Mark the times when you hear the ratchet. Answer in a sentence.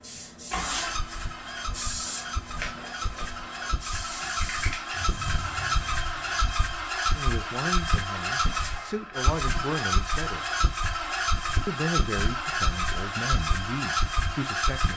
The ratchet can't be heard in this clip.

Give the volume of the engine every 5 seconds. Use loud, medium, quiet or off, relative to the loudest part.
medium, loud, loud.